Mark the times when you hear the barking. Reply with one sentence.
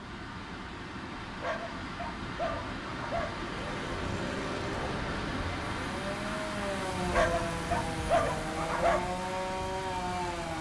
You can hear the barking from 1.4 to 3.3 s and from 7.1 to 9.0 s.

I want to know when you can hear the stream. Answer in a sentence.
The stream can be heard from 0.0 to 10.5 s.